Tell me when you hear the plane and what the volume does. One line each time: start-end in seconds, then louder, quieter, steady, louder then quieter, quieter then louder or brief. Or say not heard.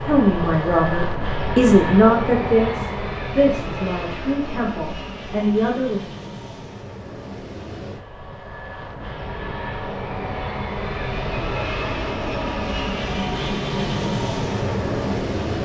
0.0-15.5 quieter then louder.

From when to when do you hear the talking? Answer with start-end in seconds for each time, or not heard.
0.0-6.0.